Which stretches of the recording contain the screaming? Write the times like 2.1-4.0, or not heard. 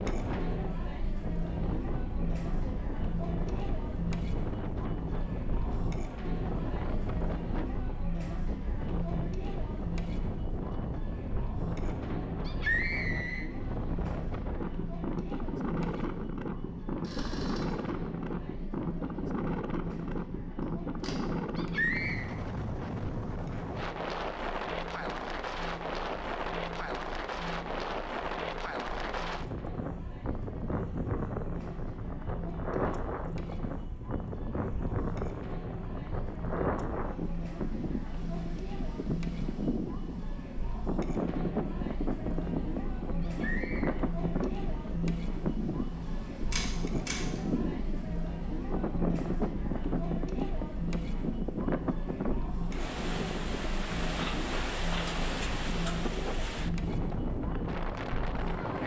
12.4-13.4, 21.6-22.3, 43.2-44.0.